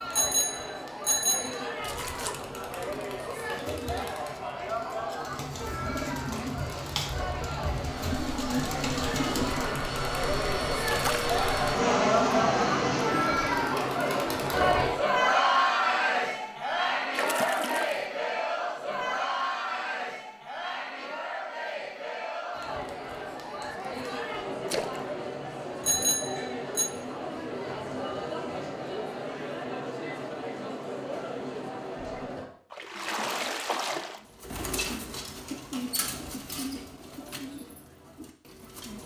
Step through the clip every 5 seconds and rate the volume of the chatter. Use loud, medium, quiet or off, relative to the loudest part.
medium, medium, loud, loud, medium, medium, medium, off.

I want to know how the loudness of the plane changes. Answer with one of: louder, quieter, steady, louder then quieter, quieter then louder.
louder.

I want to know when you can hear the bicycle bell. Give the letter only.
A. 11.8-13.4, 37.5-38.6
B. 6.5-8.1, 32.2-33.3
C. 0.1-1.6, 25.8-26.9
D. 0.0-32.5
C.